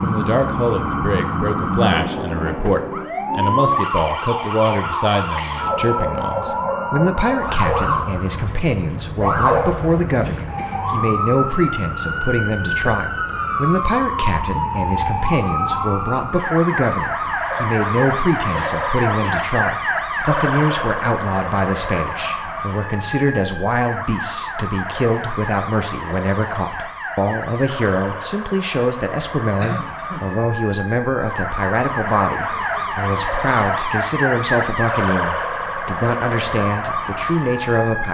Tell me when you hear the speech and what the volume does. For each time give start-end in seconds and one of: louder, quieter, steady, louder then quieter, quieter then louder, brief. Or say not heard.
0.0-38.1 steady.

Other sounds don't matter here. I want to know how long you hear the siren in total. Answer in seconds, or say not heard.
38 s.